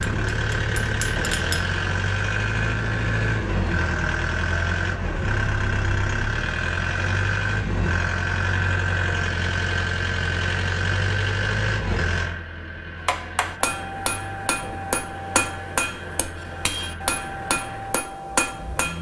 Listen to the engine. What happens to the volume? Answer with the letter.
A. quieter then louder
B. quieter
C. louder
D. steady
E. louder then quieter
B.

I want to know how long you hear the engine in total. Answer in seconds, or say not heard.
19 s.